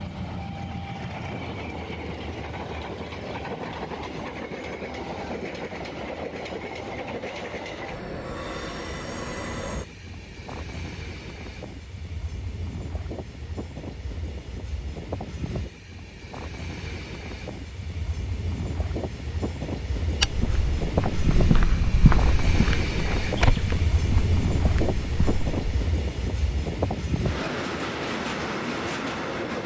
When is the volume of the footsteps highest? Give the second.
22 s.